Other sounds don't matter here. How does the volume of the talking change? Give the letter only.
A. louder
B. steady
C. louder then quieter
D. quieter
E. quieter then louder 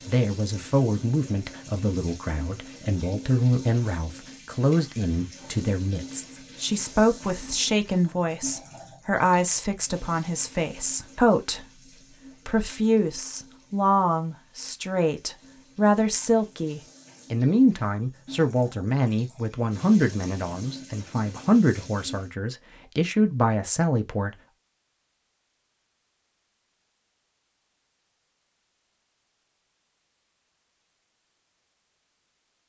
B.